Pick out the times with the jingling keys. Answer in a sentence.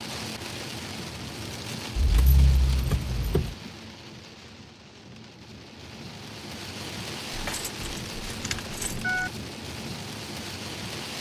The jingling keys can be heard from 1.9 to 3.5 s and from 7.3 to 9.3 s.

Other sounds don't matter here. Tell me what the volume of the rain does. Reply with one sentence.
The loudness of the rain goes down, then up.